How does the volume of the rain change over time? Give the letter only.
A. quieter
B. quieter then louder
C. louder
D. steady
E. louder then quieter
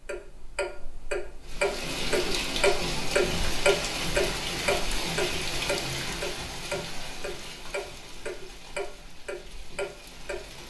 A.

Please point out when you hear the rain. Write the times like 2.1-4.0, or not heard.
1.4-10.6.